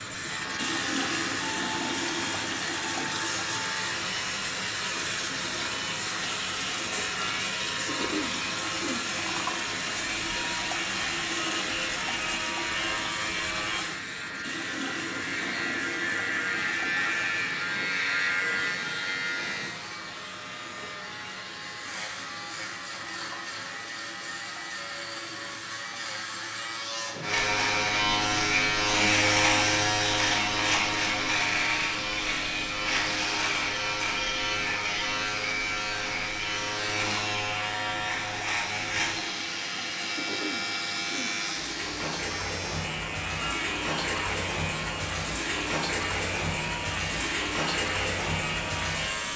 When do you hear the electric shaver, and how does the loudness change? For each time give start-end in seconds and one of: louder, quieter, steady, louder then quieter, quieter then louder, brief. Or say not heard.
0.1-49.3 louder then quieter.